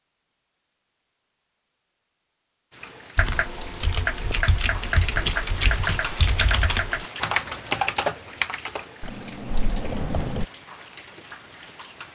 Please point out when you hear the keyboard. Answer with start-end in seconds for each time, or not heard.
3.1-10.4.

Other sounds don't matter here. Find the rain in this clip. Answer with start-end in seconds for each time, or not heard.
2.7-12.1.